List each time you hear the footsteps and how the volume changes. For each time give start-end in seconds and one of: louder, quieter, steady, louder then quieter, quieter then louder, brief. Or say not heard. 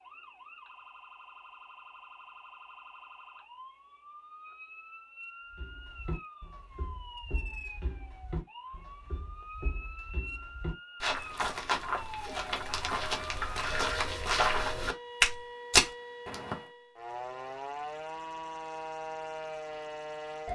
5.5-16.6 louder.